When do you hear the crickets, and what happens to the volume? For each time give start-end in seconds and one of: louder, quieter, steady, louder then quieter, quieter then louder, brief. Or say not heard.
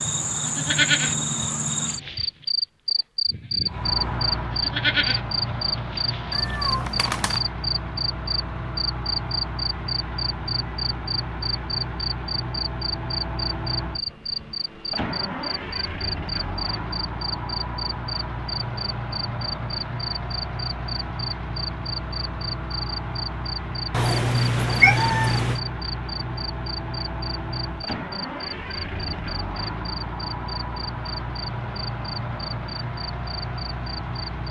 0.0-34.4 quieter.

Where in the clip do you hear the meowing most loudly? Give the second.
25 s.